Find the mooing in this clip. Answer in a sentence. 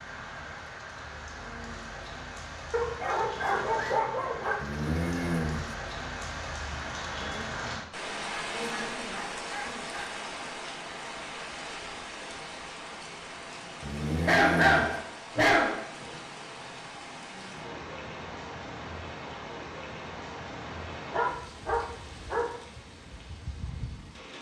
You can hear the mooing from 4.5 to 5.8 s and from 13.8 to 15.0 s.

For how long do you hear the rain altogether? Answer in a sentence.
The rain can be heard for 24 seconds in total.